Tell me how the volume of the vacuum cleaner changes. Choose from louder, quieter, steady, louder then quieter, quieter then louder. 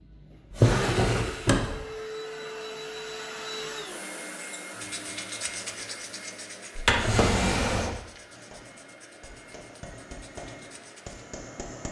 quieter.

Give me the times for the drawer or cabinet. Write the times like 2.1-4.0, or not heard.
0.5-1.8, 6.8-8.0.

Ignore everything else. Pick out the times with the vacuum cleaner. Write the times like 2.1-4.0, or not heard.
0.0-11.8.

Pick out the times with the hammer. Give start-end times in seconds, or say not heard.
8.3-11.8.